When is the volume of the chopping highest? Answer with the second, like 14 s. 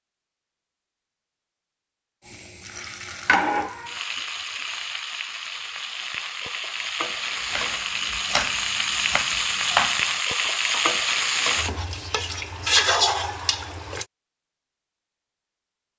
10 s.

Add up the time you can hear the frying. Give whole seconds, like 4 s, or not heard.
12 s.